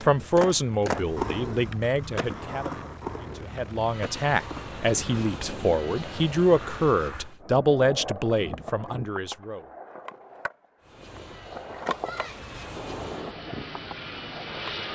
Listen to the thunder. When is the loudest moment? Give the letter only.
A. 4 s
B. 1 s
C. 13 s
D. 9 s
C.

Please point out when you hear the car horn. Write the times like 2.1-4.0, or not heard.
not heard.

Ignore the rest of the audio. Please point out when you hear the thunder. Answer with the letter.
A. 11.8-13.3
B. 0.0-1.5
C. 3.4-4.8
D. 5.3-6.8
A.